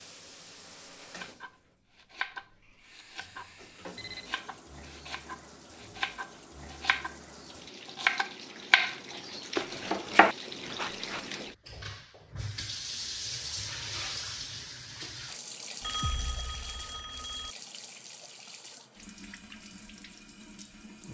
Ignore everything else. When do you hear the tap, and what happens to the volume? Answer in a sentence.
You can hear the tap from 0.0 to 21.1 s, getting louder then quieter.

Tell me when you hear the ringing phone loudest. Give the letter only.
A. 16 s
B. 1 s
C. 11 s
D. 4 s
A.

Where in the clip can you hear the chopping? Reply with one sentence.
The chopping can be heard from 1.0 to 11.2 s.